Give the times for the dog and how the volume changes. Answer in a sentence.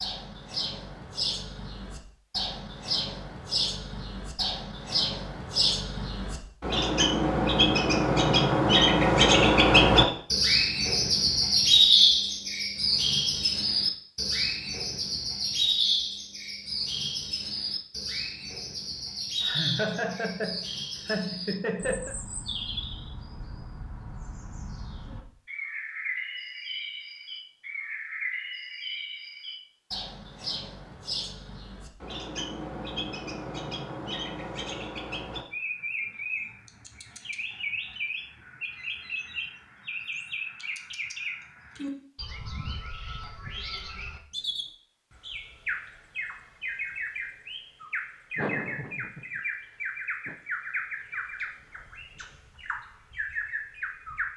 You can't hear the dog here.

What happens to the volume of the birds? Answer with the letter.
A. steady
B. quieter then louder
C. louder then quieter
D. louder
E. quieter
E.